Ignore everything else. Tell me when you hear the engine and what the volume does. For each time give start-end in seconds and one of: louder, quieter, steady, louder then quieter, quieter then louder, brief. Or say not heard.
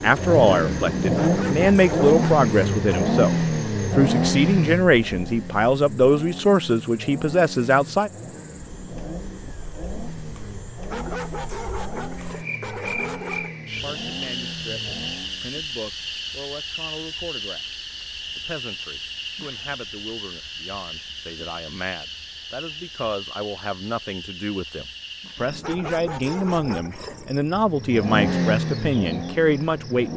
0.0-15.5 quieter
27.6-30.1 brief.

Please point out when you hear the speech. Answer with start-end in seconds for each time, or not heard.
0.0-8.1, 13.8-30.1.